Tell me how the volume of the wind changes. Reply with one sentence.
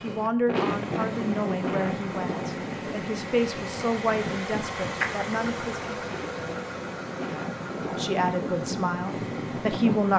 The loudness of the wind goes down, then up.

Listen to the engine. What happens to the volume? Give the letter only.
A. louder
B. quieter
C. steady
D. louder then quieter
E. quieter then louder
D.